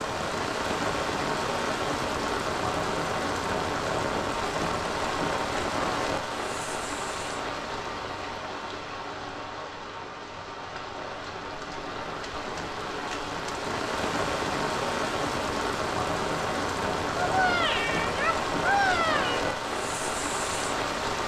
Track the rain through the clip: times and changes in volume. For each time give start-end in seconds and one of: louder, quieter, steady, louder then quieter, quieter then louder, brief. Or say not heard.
0.0-21.2 quieter then louder.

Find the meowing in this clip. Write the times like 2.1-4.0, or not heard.
17.2-19.5.